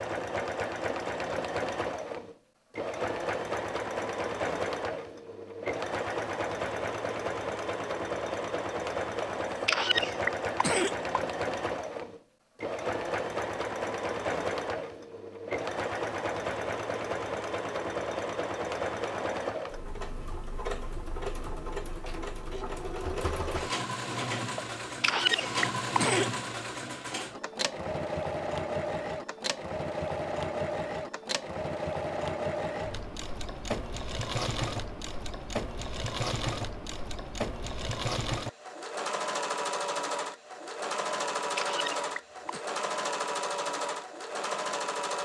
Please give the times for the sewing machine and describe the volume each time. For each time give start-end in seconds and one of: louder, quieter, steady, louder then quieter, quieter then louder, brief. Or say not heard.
0.0-45.2 steady.